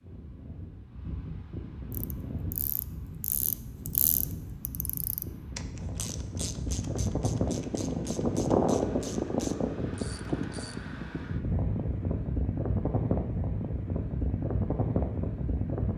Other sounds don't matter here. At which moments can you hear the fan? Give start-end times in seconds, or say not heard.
0.0-15.9.